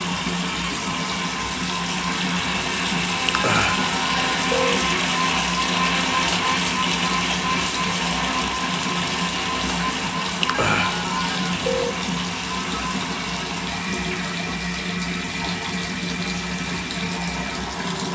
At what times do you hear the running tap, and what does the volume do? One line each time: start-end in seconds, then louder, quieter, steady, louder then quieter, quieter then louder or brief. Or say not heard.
0.0-18.0 steady.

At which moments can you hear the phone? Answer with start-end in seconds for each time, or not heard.
3.2-4.8, 10.4-11.9.